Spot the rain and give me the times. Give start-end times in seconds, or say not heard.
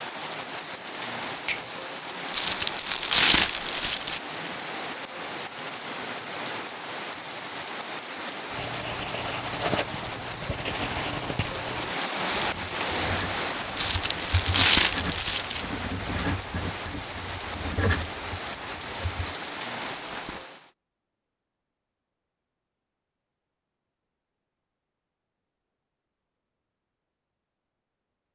0.0-20.7.